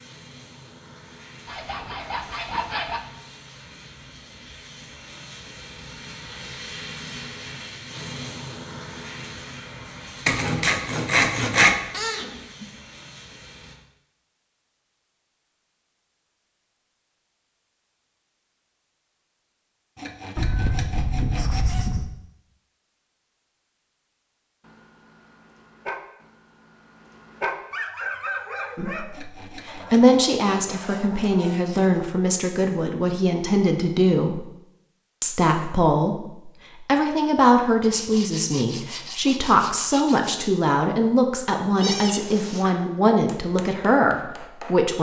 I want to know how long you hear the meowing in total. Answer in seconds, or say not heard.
3 s.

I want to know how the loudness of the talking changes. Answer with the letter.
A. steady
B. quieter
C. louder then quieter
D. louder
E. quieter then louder
A.